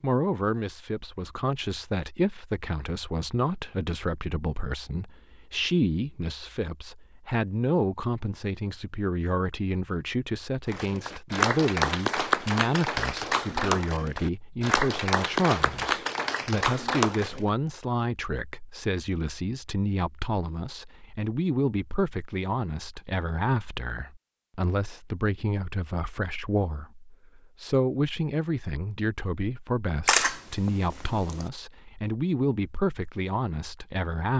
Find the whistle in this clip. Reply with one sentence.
You can't hear the whistle here.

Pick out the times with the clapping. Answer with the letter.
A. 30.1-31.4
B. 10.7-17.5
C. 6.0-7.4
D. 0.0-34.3
B.